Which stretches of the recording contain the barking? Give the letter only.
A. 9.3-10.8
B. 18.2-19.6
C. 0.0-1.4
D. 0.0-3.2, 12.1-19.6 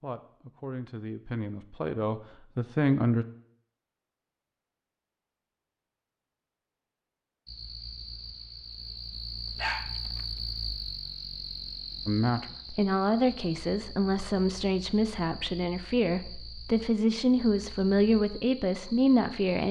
A.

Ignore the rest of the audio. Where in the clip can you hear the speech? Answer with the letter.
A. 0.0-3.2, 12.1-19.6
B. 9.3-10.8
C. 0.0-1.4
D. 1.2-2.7
A.